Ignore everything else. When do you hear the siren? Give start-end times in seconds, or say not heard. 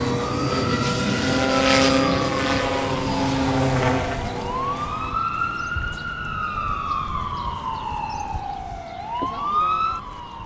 0.0-10.4.